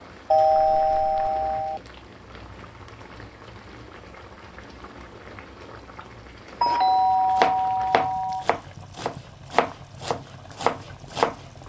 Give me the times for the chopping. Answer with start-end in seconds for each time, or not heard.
6.7-11.4.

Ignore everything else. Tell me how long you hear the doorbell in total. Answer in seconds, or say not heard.
3 s.